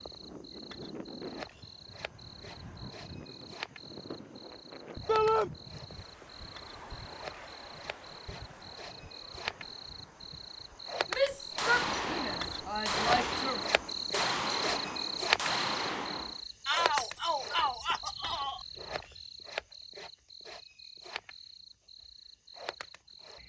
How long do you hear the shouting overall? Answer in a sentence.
You can hear the shouting for 5 seconds altogether.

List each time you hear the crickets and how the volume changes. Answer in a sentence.
The crickets can be heard from 0.0 to 23.4 s, getting louder then quieter.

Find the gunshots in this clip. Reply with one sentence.
The gunshots can be heard from 11.6 to 16.4 s.